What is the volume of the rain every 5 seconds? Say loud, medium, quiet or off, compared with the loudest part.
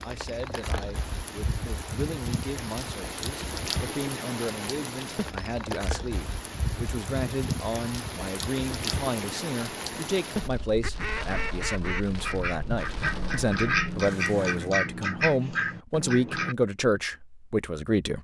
loud, loud, medium, off.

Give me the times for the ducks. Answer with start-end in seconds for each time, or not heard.
10.8-16.6.